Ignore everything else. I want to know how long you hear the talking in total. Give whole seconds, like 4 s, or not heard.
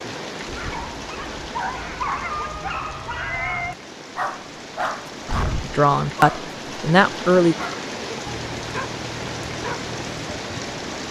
2 s.